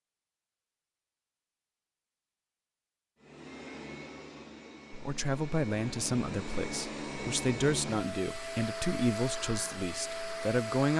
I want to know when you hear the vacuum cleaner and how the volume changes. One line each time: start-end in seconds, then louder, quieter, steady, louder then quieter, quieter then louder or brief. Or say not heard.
3.2-10.9 louder.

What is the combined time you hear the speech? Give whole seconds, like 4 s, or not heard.
6 s.